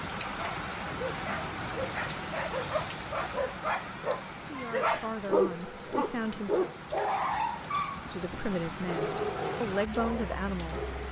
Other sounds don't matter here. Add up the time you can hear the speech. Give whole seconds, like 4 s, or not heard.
5 s.